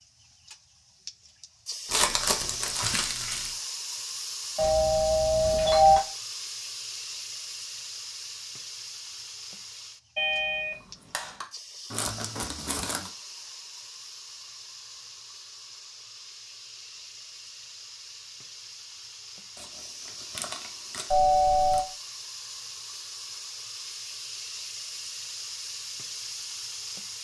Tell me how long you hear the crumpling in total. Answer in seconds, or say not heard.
5 s.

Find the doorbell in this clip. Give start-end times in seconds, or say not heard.
4.5-6.0, 10.2-11.4, 21.1-21.9.